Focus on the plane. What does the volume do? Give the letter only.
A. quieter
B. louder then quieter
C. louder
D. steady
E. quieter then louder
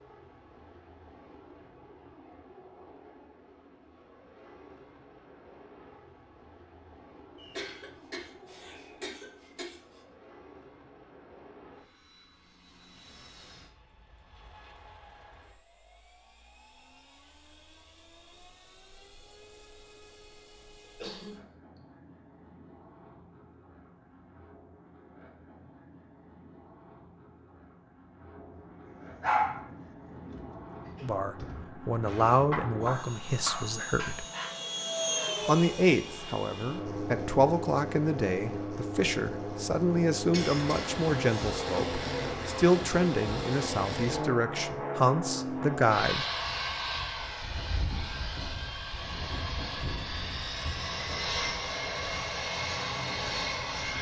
C.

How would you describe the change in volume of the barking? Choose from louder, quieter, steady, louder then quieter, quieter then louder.
louder.